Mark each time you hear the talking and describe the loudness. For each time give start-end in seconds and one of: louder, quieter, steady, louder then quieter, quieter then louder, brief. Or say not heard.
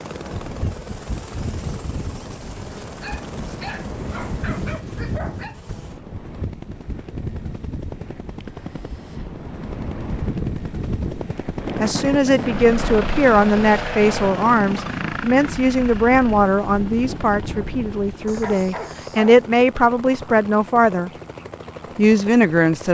11.8-21.1 quieter then louder
21.9-22.8 brief.